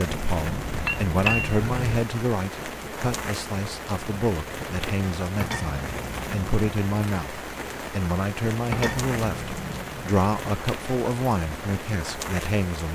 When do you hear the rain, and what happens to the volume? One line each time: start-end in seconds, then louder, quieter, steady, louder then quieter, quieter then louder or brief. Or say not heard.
0.0-12.8 steady.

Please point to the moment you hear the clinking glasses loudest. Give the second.
1 s.